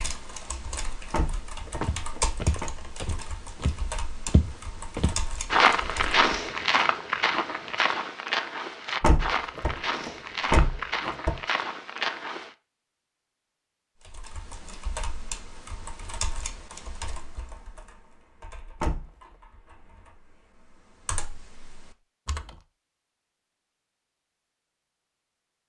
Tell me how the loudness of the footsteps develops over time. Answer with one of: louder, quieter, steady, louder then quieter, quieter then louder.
louder then quieter.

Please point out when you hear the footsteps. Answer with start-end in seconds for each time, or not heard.
1.8-12.6.